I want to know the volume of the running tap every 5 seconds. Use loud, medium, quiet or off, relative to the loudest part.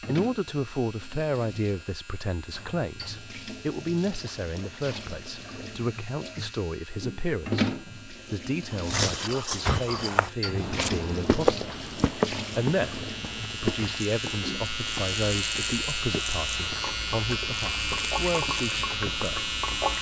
medium, loud, loud, loud.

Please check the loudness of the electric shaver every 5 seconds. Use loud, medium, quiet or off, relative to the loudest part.
quiet, quiet, medium, loud.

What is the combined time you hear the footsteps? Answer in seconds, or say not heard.
11 s.